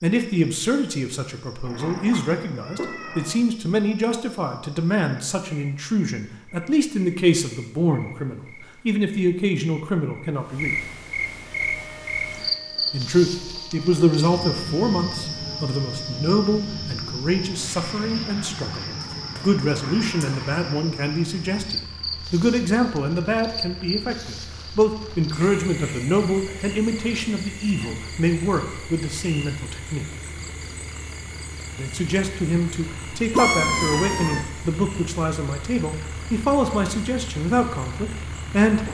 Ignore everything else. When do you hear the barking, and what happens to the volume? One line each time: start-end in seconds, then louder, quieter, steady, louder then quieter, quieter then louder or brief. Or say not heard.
not heard.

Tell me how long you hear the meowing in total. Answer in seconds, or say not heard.
4 s.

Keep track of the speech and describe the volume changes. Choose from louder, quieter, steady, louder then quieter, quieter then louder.
steady.